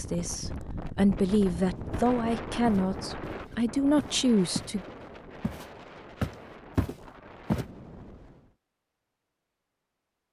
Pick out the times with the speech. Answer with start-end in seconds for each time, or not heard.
0.0-4.8.